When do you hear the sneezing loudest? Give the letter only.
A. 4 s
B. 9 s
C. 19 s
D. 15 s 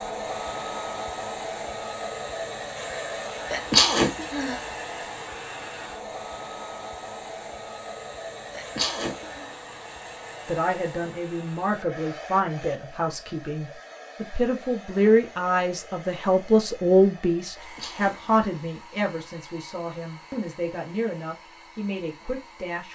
A.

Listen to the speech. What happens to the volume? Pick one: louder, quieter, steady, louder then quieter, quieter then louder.
louder then quieter.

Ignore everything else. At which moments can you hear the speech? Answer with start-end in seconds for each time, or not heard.
10.4-22.8.